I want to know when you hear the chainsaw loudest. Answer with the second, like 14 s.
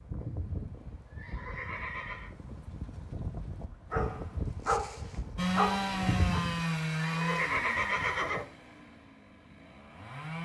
6 s.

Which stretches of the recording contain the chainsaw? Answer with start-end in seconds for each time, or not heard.
5.3-10.4.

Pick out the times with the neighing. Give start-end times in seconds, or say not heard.
0.2-2.3, 6.0-8.4.